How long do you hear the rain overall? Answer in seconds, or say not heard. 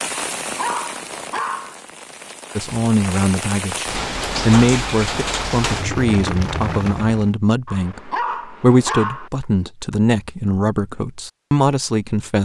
7 s.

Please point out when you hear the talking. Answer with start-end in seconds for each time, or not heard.
2.5-12.3.